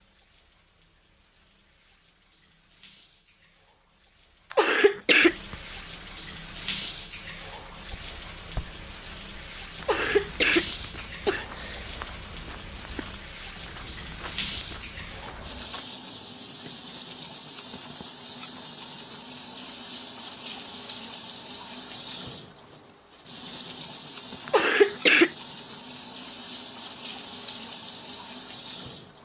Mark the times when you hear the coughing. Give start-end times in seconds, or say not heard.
4.5-5.5, 9.8-11.8, 24.4-25.3.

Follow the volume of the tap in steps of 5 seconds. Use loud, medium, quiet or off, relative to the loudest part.
quiet, loud, loud, loud, loud, loud.